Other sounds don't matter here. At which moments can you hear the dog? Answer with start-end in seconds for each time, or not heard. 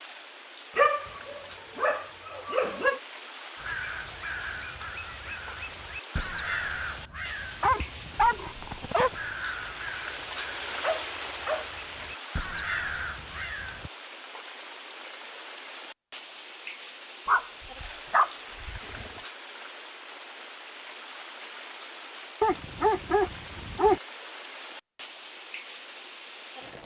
0.8-3.0, 7.6-9.1, 10.8-12.1, 17.2-19.2, 22.4-24.0.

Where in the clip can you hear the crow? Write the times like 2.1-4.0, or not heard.
3.5-13.9.